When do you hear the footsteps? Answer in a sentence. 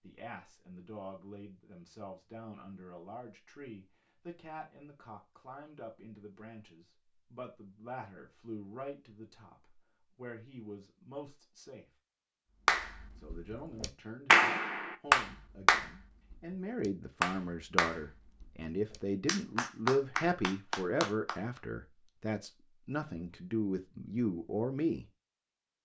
You can't hear the footsteps here.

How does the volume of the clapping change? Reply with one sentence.
The volume of the clapping goes down, then up.